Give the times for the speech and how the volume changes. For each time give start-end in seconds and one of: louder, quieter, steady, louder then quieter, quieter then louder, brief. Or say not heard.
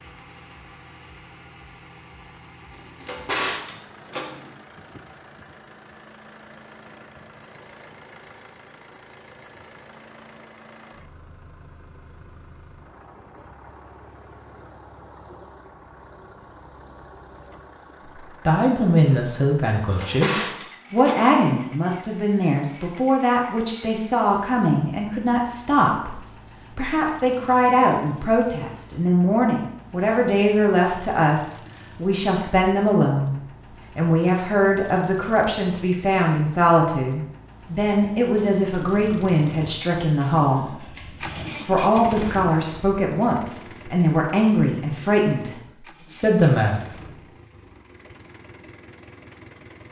18.2-47.0 steady.